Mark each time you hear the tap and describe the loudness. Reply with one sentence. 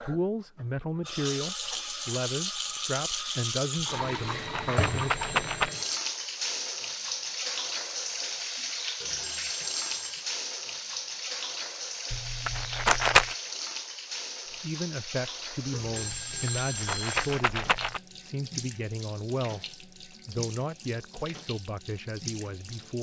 You can hear the tap from 0.0 to 22.9 s, getting quieter.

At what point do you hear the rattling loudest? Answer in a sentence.
The loudest moment of the rattling is at 13 seconds.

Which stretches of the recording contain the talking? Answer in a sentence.
You can hear the talking from 0.0 to 5.2 s and from 14.4 to 22.9 s.